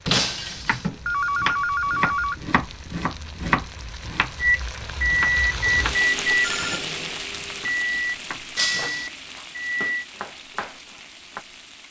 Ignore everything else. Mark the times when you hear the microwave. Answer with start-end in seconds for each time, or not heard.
4.4-10.1.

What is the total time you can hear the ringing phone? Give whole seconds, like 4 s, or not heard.
2 s.